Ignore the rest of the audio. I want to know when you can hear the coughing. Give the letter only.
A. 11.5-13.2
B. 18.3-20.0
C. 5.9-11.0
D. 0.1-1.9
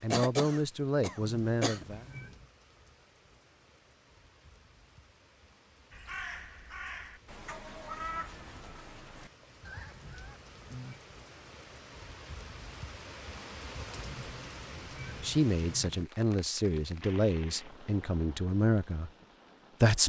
D.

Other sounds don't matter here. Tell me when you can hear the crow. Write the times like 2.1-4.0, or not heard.
5.9-11.0.